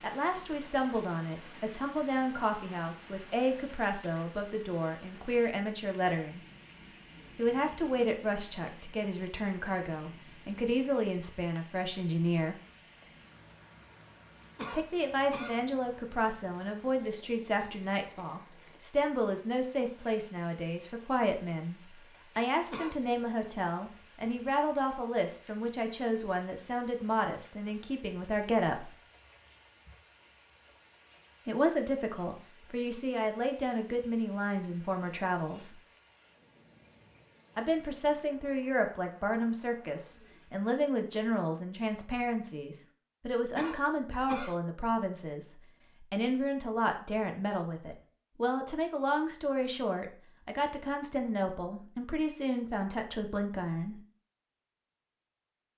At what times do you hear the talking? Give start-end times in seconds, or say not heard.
0.0-6.5, 7.3-12.6, 14.7-28.9, 31.4-35.8, 37.5-54.0.